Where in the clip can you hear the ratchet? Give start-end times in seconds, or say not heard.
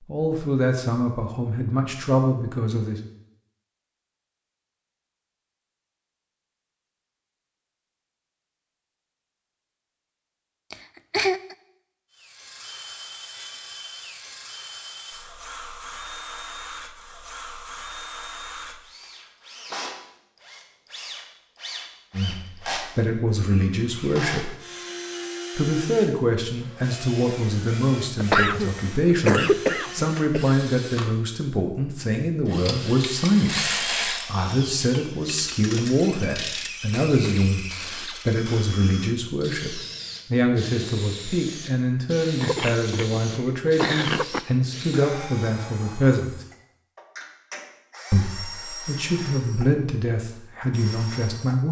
32.6-38.6.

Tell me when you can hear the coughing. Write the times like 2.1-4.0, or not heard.
10.7-11.6, 28.1-30.6, 42.4-44.4.